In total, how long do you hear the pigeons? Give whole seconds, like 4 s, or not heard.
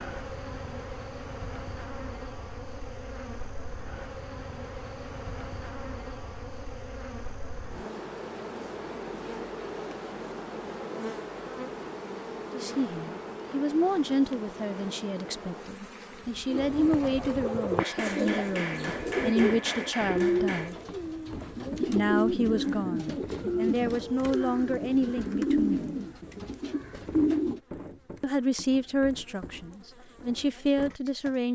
11 s.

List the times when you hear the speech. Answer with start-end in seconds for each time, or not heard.
12.5-20.8, 21.9-25.9, 28.2-31.5.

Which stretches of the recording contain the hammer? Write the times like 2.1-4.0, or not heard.
17.8-20.8.